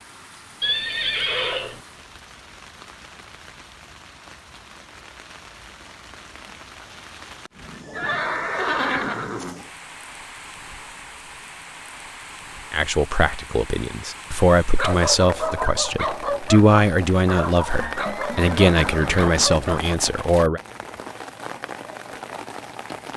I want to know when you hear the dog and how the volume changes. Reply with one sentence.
You can hear the dog from 14.8 to 19.9 s, at a steady volume.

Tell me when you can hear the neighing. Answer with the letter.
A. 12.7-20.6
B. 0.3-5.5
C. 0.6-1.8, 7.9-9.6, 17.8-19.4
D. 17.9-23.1
C.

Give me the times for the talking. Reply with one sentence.
You can hear the talking from 12.7 to 20.6 s.